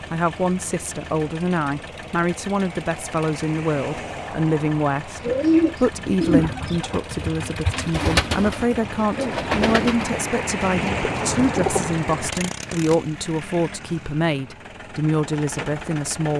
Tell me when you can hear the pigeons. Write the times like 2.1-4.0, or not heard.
5.2-11.9.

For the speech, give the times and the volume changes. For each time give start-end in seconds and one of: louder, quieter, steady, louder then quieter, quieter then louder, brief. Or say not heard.
0.1-16.3 steady.